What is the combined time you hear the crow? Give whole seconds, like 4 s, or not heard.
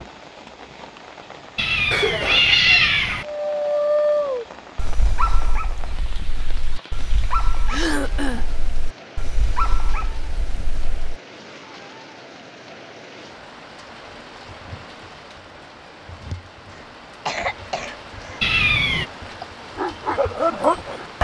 not heard.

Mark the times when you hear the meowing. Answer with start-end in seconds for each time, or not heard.
1.6-3.2, 18.4-19.1.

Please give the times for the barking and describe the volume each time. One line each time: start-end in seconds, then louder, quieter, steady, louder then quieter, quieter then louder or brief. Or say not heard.
3.2-11.2 quieter then louder
19.2-21.1 brief.